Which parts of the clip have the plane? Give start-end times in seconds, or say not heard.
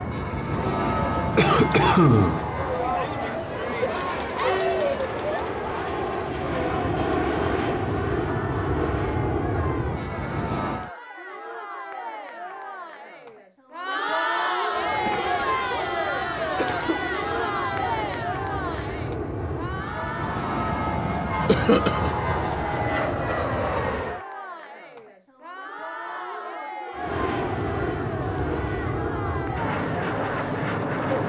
0.0-10.9, 14.7-24.2, 26.9-31.2.